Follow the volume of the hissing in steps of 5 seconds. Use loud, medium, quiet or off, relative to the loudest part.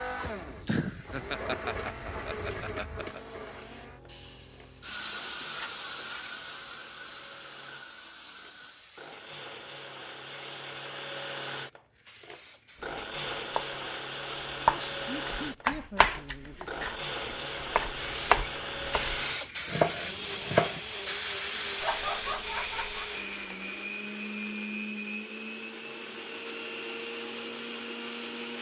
medium, medium, quiet, loud, loud, off.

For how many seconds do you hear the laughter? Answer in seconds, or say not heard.
6 s.